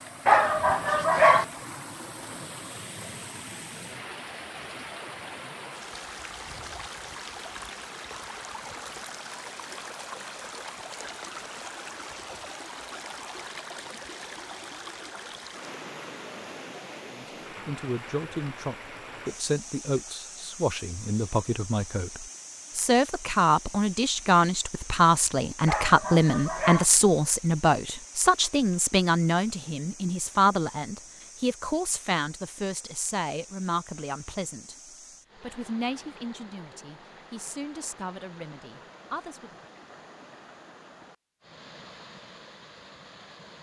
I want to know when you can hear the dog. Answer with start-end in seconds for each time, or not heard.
0.2-1.4, 25.6-26.9.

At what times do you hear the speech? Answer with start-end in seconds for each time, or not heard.
17.1-34.8, 35.4-39.5.